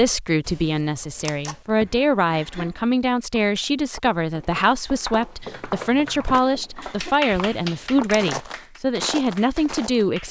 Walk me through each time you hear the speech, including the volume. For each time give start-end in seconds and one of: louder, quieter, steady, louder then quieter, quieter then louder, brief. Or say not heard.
0.0-10.2 steady.